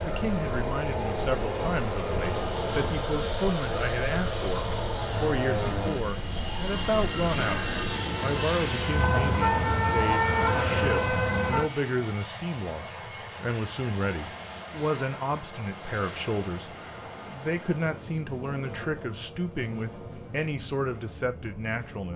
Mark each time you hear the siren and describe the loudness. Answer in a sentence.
The siren can be heard from 0.0 to 11.7 s, getting louder.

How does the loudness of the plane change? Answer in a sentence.
The volume of the plane goes down.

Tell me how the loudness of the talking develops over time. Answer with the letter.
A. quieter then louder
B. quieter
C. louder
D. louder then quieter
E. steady
E.